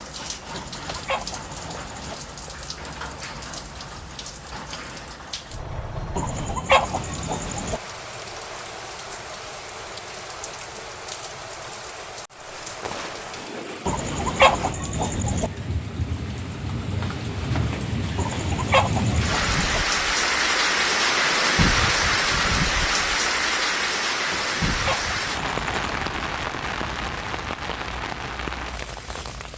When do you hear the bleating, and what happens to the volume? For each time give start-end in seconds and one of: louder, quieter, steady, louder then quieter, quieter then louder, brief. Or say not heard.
not heard.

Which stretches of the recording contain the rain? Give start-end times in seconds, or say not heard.
0.0-29.5.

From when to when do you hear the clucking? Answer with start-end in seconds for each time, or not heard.
0.5-2.1, 6.2-7.8, 13.8-15.5, 18.1-19.8, 24.3-25.9.